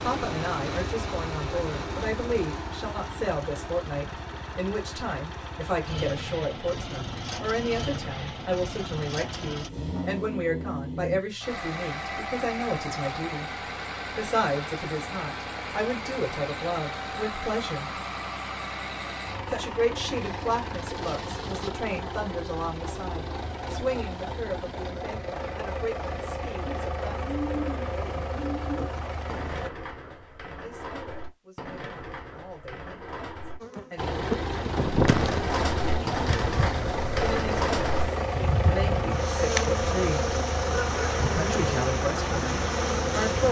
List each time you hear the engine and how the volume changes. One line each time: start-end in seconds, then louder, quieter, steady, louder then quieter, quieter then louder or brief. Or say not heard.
0.0-29.7 steady
34.0-43.4 steady.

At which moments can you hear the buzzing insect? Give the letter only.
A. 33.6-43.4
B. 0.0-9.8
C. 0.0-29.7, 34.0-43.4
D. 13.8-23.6
A.